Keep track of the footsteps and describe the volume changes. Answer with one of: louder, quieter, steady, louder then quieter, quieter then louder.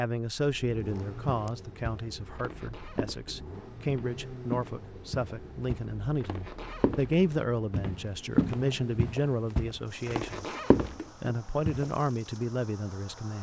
louder.